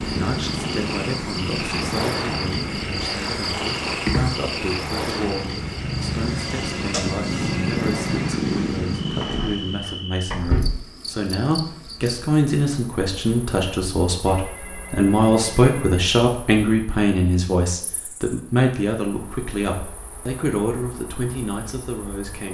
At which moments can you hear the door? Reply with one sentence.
The door can be heard from 9.2 to 10.8 s.